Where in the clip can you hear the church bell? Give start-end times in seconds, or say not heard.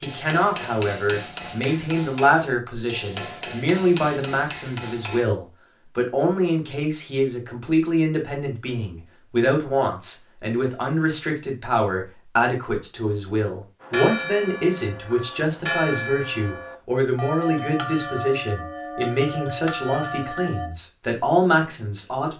13.8-20.7.